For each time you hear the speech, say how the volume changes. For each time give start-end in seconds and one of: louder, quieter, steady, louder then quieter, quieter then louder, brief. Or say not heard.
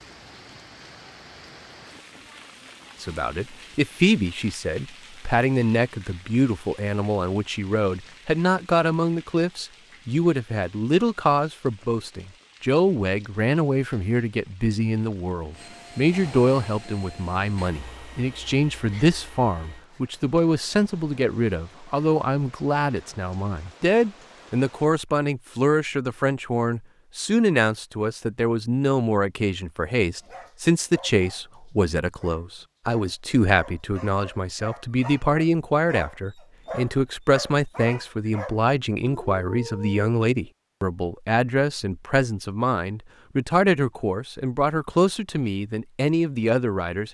3.0-47.0 steady.